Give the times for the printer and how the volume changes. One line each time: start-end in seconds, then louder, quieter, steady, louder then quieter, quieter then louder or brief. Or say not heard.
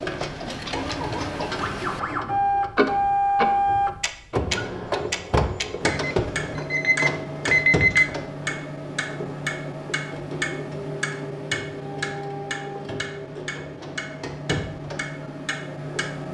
0.0-16.2 quieter.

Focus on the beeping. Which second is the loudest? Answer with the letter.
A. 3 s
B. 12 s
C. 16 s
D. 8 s
D.